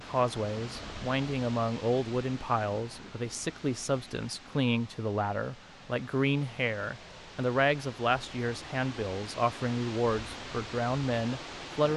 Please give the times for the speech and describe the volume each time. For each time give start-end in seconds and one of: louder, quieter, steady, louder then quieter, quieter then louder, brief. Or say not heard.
0.0-11.9 steady.